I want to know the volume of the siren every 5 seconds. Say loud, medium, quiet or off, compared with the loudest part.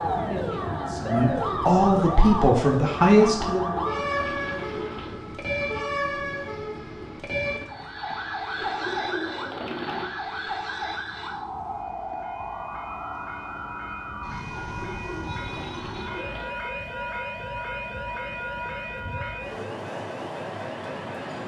loud, loud, medium, medium, quiet.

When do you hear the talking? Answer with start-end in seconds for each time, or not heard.
0.1-3.8.